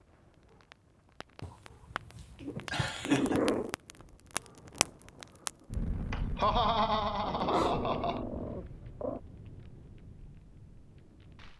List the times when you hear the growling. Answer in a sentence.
You can hear the growling from 1.4 to 3.8 s and from 7.2 to 9.2 s.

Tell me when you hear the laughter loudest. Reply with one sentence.
The volume of the laughter peaks at 7 seconds.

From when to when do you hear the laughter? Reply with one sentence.
You can hear the laughter from 2.6 to 3.4 s and from 6.1 to 8.2 s.